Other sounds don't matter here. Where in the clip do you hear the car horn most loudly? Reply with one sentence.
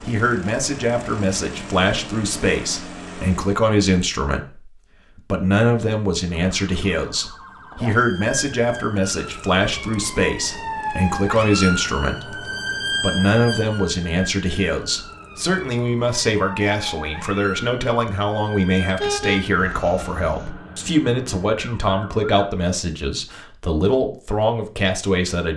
The loudest moment of the car horn is at 19 seconds.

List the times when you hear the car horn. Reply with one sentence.
The car horn can be heard from 18.9 to 20.5 s.